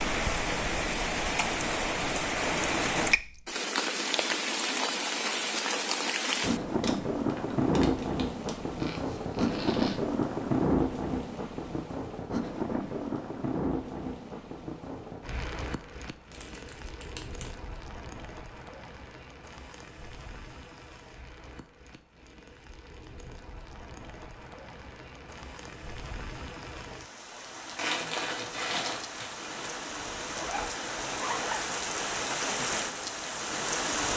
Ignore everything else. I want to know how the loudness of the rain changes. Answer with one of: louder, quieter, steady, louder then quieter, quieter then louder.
quieter then louder.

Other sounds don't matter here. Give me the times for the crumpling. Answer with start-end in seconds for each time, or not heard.
6.8-8.6, 16.3-17.5, 27.8-29.6.